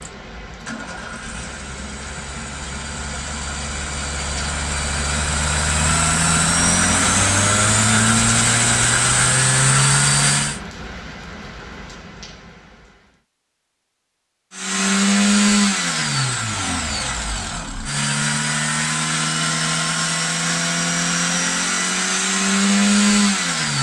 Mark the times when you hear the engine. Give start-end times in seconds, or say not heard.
0.0-10.6, 14.5-23.7.